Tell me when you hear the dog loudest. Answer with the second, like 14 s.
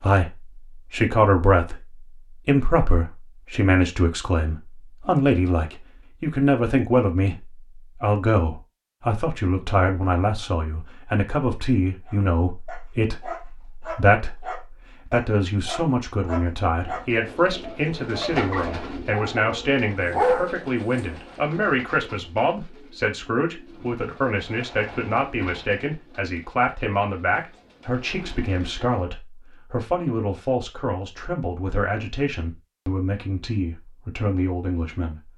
20 s.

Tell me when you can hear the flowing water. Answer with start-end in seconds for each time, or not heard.
not heard.